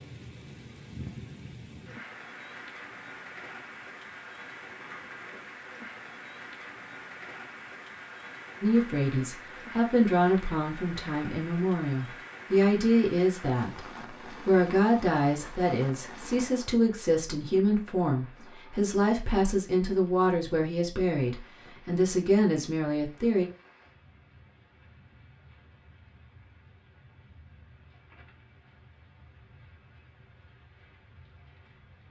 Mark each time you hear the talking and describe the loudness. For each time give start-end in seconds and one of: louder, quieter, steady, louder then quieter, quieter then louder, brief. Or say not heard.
8.6-23.4 steady.